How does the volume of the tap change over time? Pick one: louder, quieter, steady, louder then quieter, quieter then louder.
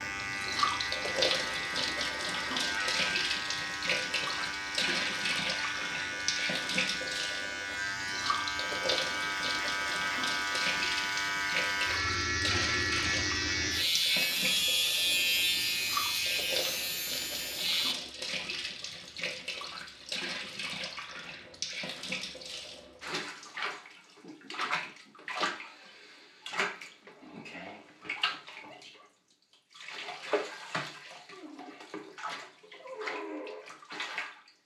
quieter.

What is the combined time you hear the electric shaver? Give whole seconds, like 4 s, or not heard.
18 s.